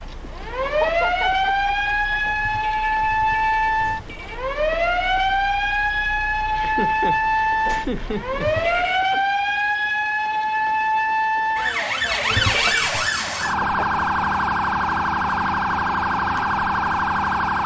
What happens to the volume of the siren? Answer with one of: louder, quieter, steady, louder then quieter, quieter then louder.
steady.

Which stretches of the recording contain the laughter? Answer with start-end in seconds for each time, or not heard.
0.6-2.2, 6.5-9.2, 13.6-14.1.